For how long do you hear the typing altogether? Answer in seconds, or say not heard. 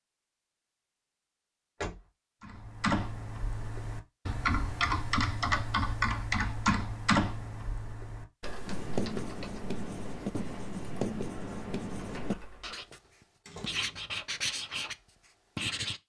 10 s.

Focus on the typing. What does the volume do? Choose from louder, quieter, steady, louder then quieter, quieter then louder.
quieter.